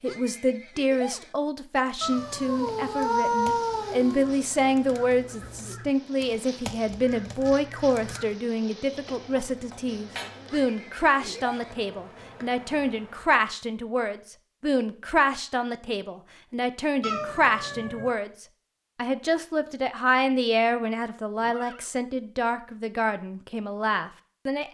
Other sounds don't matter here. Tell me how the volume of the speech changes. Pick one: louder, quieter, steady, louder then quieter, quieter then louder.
steady.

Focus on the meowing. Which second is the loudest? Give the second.
3 s.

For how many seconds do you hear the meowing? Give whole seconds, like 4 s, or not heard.
5 s.